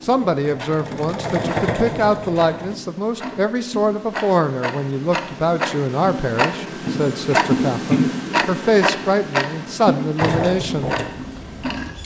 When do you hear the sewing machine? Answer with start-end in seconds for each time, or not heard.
0.0-2.8, 10.2-12.0.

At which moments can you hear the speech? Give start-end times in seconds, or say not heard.
0.0-10.9.